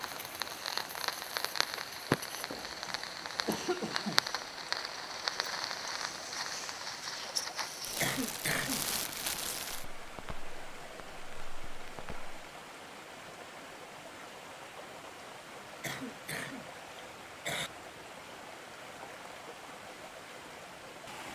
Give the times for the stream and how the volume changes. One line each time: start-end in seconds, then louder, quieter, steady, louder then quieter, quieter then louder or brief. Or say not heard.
0.0-21.3 steady.